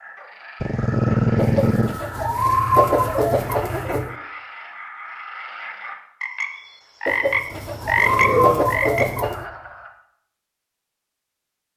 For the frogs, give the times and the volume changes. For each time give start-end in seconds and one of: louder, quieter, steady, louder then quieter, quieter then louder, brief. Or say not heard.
0.0-9.9 louder.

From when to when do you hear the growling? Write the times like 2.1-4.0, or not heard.
0.6-2.0, 8.0-8.8.